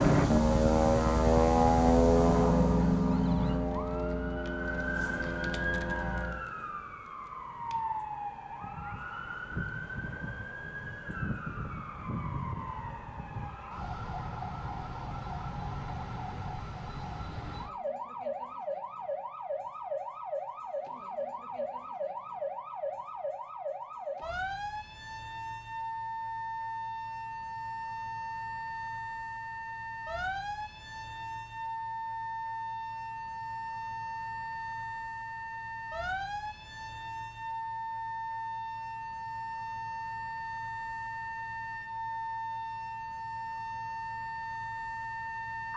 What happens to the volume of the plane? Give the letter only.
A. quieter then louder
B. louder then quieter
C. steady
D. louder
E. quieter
E.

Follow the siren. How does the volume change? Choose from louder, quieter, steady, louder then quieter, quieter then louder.
steady.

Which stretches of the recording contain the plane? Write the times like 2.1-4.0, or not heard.
0.0-6.5.